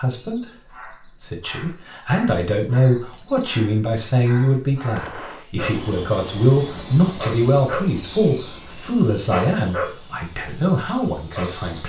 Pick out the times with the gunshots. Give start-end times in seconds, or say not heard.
5.0-5.5.